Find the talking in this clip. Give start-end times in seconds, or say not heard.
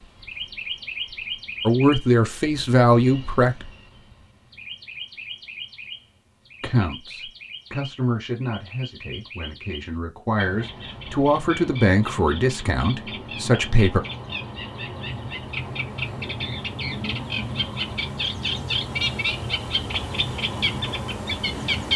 1.6-3.6, 6.6-14.0.